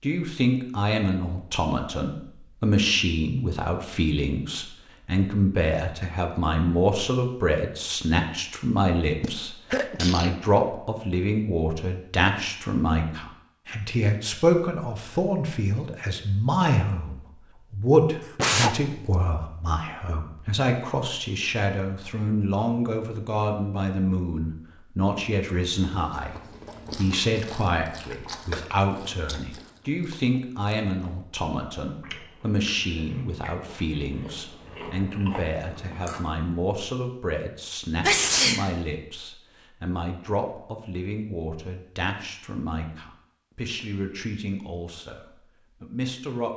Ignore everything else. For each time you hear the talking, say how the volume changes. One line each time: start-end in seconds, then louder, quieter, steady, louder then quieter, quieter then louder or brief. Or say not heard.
0.0-46.5 quieter.